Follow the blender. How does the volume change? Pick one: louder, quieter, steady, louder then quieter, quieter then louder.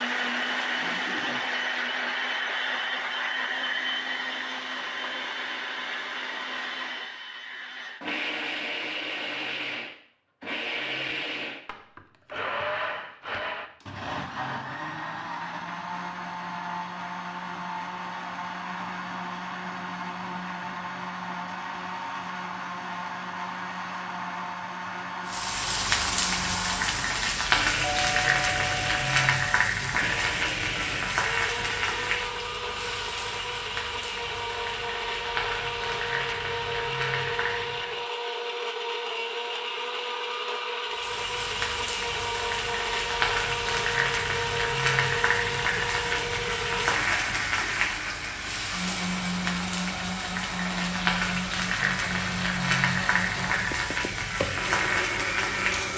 steady.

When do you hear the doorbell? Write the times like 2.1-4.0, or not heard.
27.8-29.6.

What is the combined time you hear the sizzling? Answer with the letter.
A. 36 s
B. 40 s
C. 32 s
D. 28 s
D.